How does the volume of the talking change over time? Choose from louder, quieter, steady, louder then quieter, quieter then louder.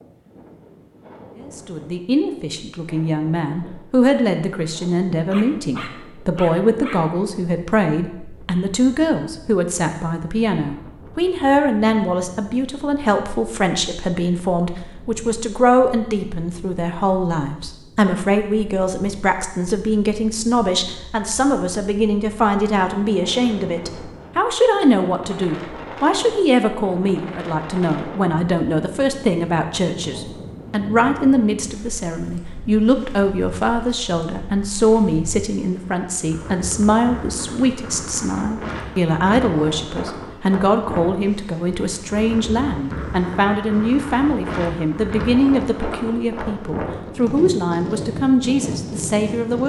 steady.